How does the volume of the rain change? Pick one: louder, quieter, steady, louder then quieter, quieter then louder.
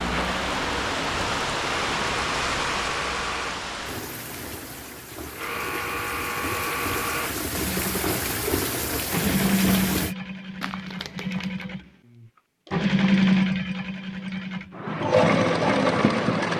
quieter then louder.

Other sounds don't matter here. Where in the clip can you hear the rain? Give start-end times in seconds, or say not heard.
0.0-10.2.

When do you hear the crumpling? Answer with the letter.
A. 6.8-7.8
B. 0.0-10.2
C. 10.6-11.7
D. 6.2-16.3
C.